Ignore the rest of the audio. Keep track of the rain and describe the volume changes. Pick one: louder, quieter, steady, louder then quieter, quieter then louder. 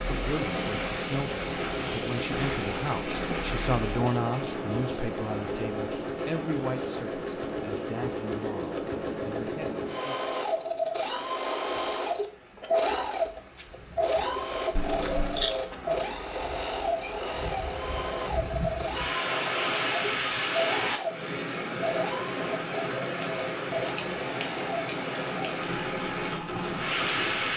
quieter then louder.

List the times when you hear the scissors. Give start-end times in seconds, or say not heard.
14.8-15.6.